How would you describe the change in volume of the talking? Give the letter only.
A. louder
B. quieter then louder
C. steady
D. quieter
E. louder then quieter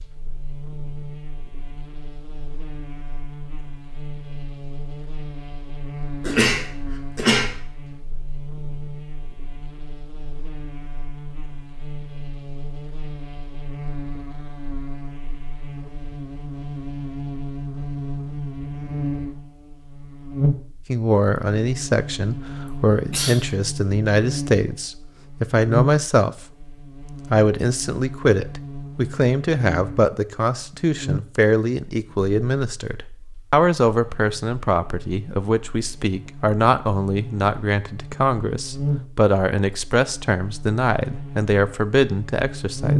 C.